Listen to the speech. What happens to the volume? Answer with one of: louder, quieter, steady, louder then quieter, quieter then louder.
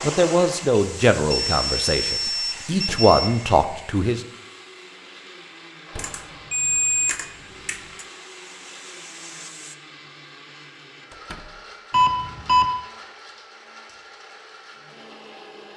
quieter then louder.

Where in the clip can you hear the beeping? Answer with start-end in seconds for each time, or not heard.
1.3-3.3, 6.0-8.1, 11.9-12.7.